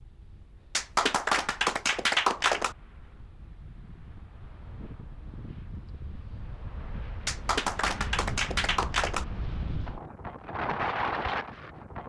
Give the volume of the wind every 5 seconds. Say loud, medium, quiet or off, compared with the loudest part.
quiet, medium, loud.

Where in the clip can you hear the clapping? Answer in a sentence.
You can hear the clapping from 0.8 to 2.8 s and from 7.2 to 9.2 s.